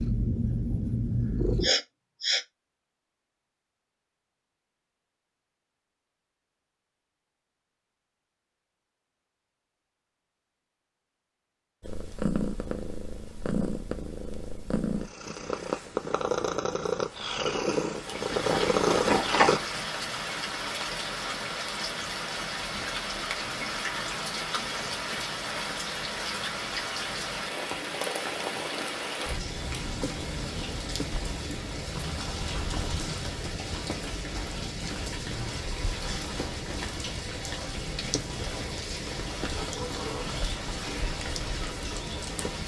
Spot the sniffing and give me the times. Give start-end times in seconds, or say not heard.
1.6-2.4.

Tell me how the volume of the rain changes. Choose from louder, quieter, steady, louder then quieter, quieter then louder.
steady.